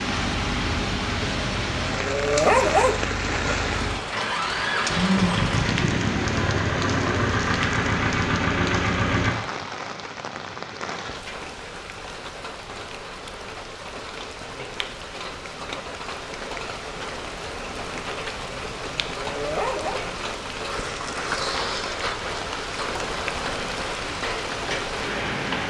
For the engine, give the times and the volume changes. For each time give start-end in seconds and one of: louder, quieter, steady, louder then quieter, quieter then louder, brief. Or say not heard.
0.0-9.3 louder.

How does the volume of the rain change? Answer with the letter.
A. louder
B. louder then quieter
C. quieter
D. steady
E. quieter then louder
E.